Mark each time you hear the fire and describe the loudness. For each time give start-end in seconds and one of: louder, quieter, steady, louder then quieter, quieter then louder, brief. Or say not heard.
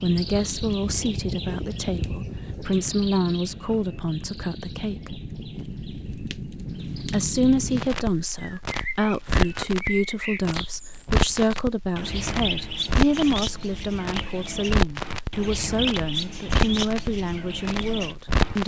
0.1-18.6 louder.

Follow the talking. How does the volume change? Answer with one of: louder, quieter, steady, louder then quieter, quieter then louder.
steady.